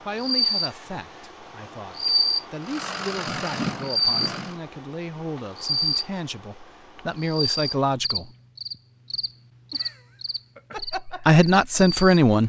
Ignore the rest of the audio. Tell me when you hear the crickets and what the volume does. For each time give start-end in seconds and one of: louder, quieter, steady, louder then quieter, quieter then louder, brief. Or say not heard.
0.0-12.4 quieter.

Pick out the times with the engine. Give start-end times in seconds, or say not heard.
2.6-4.6.